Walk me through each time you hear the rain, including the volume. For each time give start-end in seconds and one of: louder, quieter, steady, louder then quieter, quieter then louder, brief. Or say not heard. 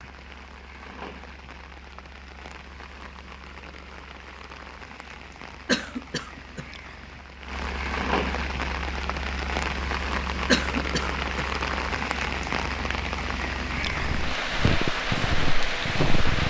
0.0-16.4 louder.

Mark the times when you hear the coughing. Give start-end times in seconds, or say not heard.
5.7-6.7, 10.4-11.4.